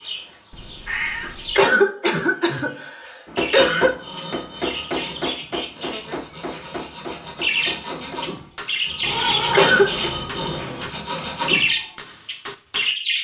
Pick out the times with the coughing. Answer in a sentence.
The coughing can be heard from 1.6 to 3.9 s and from 9.5 to 10.1 s.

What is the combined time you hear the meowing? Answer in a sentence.
You can hear the meowing for 3 seconds altogether.